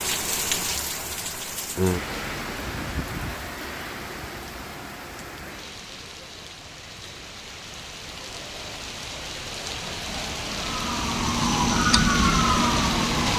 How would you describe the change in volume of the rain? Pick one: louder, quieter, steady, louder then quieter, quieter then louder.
quieter then louder.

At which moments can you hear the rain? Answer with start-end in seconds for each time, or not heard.
0.0-13.3.